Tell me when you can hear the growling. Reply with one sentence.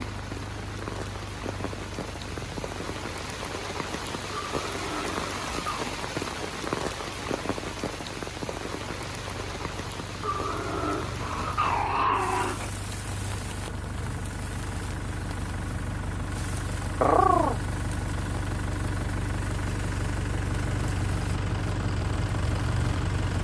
You can hear the growling from 4.3 to 6.0 s, from 10.2 to 12.7 s and from 17.0 to 17.6 s.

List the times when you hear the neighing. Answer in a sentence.
You can't hear the neighing here.